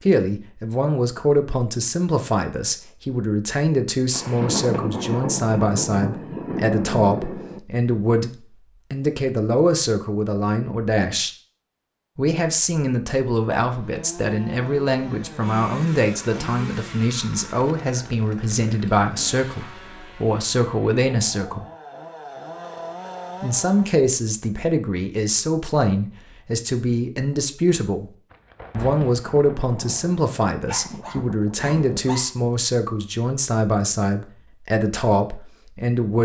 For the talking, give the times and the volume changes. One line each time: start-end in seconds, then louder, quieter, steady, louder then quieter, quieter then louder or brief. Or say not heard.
0.0-11.3 steady
12.2-21.6 steady
23.4-28.1 steady
28.8-36.2 steady.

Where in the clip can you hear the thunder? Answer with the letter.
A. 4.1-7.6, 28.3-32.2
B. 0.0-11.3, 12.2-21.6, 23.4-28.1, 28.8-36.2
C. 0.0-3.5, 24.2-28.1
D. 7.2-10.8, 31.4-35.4
A.